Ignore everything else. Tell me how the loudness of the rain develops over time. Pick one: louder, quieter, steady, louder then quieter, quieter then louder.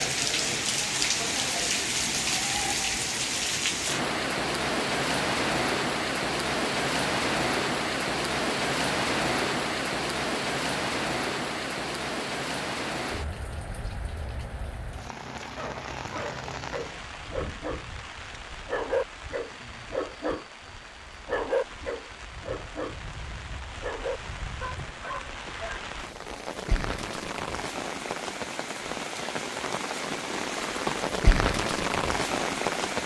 quieter then louder.